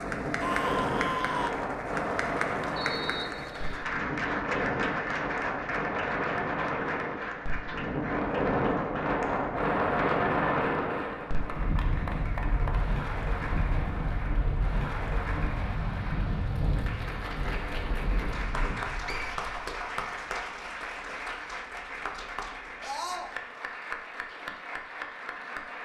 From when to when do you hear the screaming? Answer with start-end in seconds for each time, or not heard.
0.4-1.6, 22.8-23.3.